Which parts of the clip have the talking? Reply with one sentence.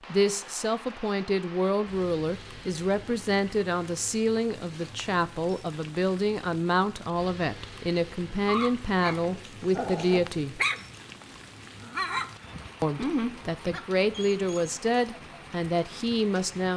You can hear the talking from 0.1 to 10.6 s and from 12.8 to 16.7 s.